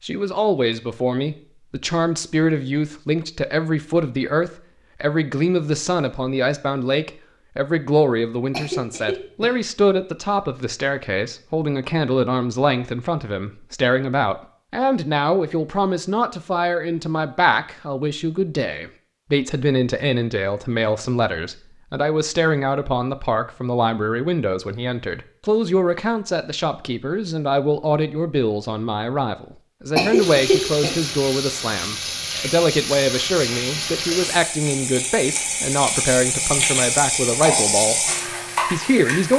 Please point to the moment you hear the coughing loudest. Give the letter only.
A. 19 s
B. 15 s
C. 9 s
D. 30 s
D.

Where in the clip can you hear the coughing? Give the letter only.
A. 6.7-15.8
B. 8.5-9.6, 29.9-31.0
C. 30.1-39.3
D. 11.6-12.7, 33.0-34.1
B.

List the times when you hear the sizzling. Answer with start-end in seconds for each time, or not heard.
30.1-39.3.